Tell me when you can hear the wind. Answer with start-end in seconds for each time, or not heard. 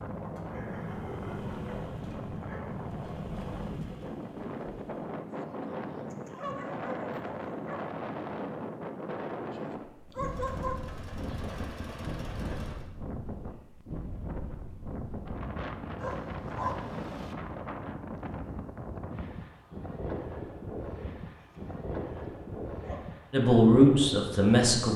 0.0-24.9.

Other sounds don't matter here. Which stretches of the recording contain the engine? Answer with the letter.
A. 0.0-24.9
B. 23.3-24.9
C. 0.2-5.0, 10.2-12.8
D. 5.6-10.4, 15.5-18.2
C.